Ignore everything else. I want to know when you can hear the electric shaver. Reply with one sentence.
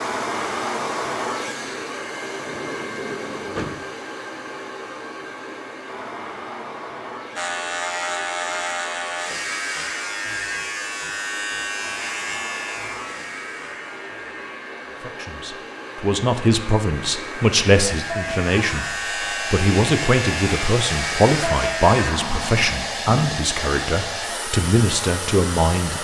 The electric shaver can be heard from 7.3 to 22.1 s.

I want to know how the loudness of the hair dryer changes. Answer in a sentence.
The volume of the hair dryer goes down, then up.